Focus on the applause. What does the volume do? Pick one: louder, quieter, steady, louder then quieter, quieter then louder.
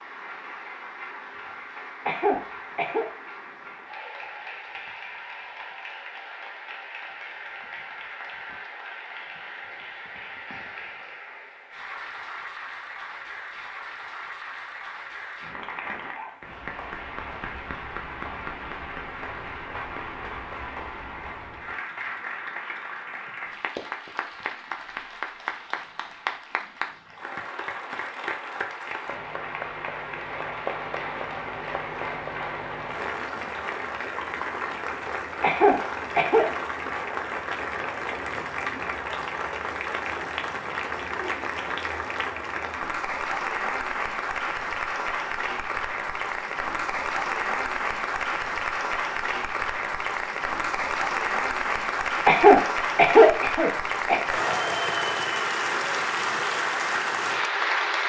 louder.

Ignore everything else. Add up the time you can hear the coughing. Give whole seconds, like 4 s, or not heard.
4 s.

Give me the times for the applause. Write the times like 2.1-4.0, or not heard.
0.0-58.0.